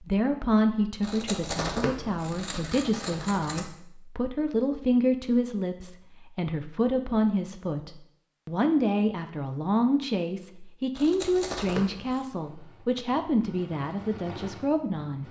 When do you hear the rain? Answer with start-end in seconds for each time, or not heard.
not heard.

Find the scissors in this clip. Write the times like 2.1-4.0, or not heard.
1.0-3.6, 10.9-12.2.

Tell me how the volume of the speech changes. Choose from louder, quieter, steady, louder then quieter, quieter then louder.
steady.